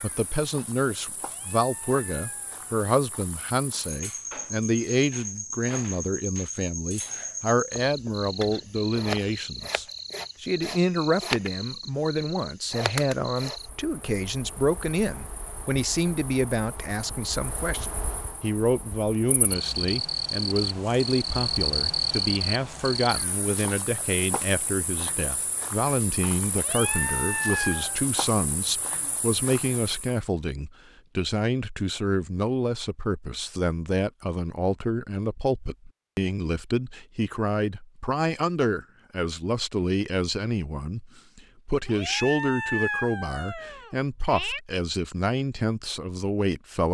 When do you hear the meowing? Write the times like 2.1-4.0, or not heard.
1.1-2.6, 26.6-28.0, 41.9-44.6.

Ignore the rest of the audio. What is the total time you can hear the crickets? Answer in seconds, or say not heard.
30 s.